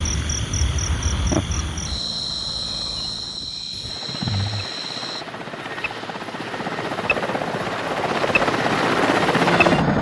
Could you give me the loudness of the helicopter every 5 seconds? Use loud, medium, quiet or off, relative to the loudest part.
quiet, loud.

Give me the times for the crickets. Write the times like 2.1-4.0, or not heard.
0.0-5.2.